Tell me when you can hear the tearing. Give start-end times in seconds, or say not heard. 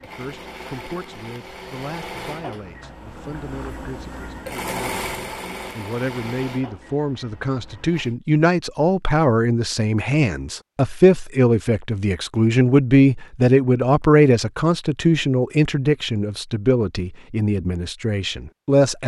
not heard.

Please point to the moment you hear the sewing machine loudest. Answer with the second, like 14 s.
5 s.